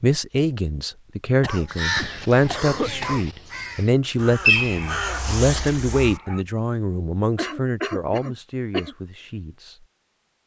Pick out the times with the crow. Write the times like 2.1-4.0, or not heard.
1.6-6.2.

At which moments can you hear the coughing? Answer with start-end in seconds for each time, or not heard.
1.4-3.3, 7.3-8.9.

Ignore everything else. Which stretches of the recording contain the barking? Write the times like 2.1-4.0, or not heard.
4.5-6.4.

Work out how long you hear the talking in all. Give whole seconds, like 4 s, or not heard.
10 s.